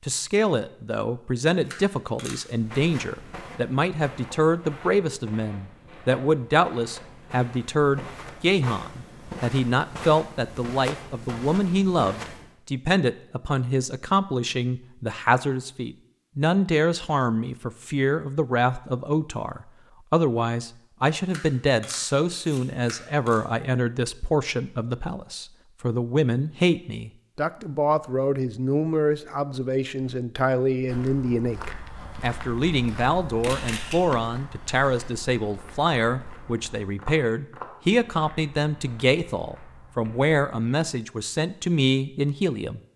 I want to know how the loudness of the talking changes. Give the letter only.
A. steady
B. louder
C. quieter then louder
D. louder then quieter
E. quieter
A.